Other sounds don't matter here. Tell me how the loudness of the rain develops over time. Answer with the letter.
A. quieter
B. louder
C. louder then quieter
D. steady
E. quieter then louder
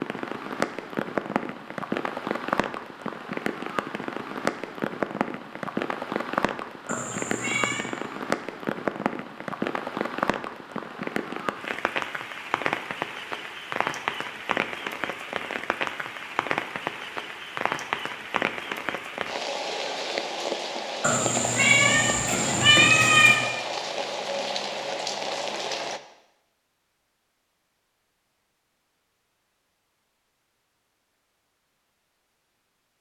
D.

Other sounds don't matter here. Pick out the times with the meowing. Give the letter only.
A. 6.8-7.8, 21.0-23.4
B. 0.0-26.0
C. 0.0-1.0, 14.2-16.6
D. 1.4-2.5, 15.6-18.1
A.